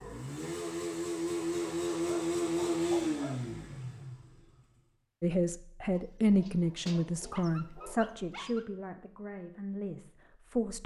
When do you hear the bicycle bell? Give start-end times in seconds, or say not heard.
not heard.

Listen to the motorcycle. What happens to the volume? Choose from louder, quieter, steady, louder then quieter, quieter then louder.
louder then quieter.